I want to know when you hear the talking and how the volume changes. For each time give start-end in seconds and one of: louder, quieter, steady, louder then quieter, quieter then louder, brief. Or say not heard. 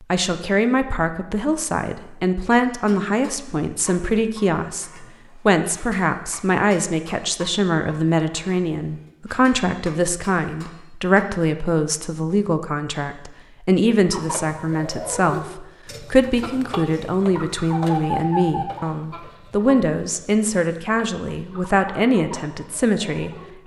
0.1-23.3 steady.